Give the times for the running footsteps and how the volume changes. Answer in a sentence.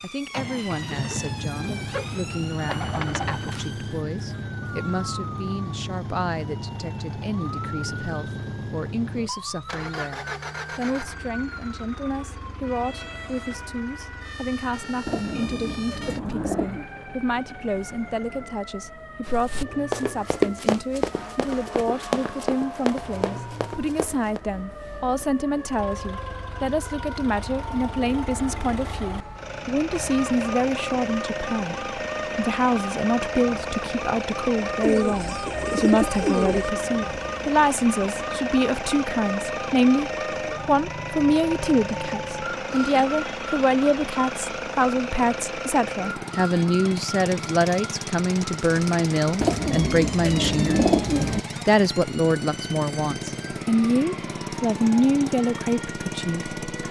The running footsteps can be heard from 19.2 to 24.4 s, getting quieter.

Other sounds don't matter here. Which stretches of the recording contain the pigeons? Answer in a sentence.
The pigeons can be heard from 1.6 to 3.5 s, from 15.1 to 16.9 s, from 34.8 to 36.7 s and from 49.4 to 51.4 s.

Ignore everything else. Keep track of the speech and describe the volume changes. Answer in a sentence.
The loudness of the speech goes up.